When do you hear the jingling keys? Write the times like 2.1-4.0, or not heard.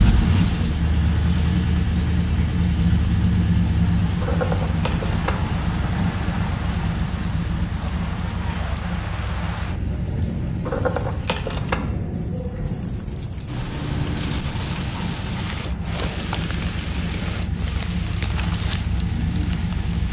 4.2-5.5, 10.7-11.9.